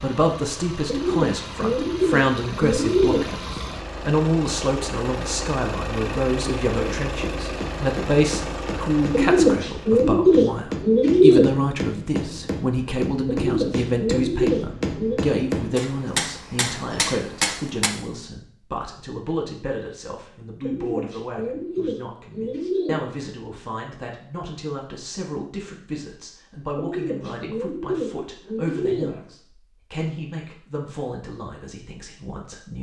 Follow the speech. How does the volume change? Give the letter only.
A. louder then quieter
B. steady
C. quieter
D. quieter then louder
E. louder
C.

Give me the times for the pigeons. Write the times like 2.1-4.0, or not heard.
0.8-3.3, 9.1-11.4, 13.2-15.2, 20.6-23.0, 26.8-29.2.